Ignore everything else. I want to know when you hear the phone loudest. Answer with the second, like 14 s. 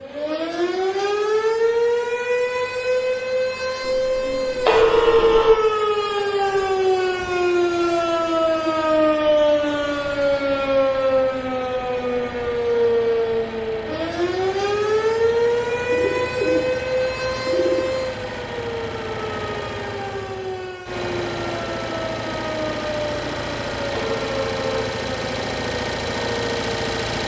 5 s.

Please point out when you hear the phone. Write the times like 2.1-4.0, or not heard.
4.7-5.5, 23.9-24.6.